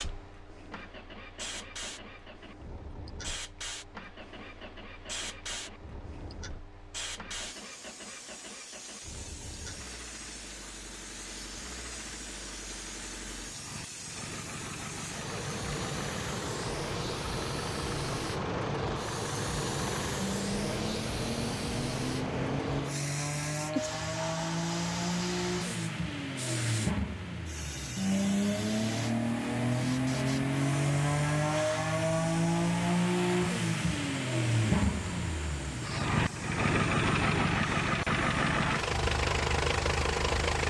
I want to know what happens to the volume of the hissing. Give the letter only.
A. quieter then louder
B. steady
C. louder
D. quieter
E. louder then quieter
E.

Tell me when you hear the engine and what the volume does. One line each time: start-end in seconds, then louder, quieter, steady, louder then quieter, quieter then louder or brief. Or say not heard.
0.0-40.6 louder.